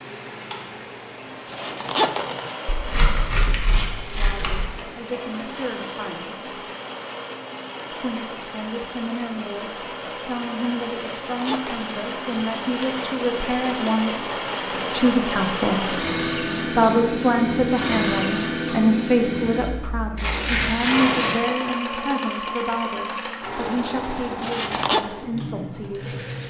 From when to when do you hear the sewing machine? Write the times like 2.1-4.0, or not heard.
0.0-26.4.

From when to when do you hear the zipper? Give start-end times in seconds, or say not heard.
1.4-2.5, 11.2-11.9, 24.4-25.1.